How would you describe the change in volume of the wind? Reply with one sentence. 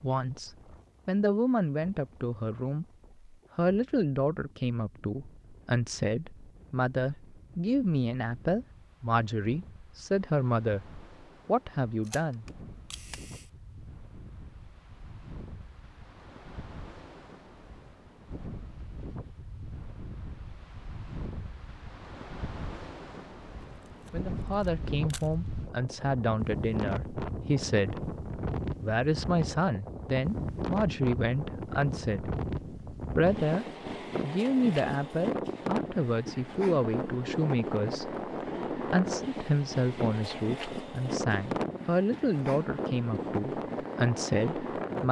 The volume of the wind goes up.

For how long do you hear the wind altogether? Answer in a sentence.
The wind can be heard for 45 seconds in total.